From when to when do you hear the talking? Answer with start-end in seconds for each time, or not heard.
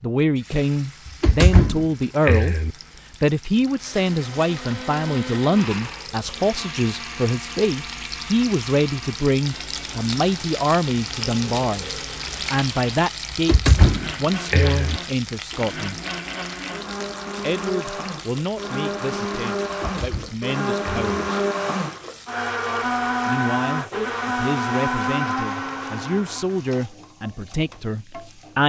0.0-2.5, 3.2-16.0, 17.4-21.3, 23.2-28.6.